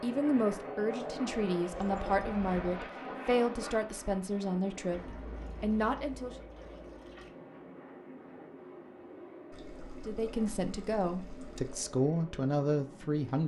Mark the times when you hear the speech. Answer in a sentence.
The speech can be heard from 0.0 to 6.3 s and from 10.1 to 13.4 s.